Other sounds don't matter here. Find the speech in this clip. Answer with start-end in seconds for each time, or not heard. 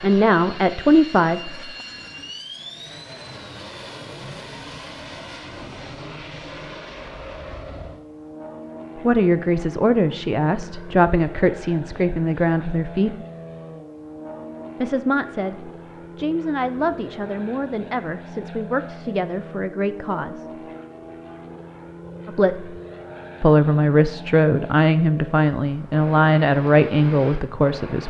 0.0-1.7, 8.9-13.2, 14.8-20.4, 22.2-22.8, 23.4-28.0.